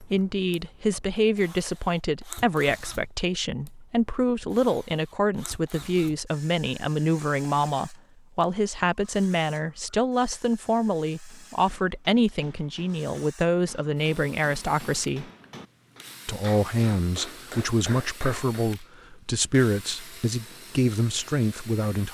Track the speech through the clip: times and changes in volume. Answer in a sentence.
You can hear the speech from 0.0 to 15.2 s, at a steady volume; and from 16.2 to 22.0 s, at a steady volume.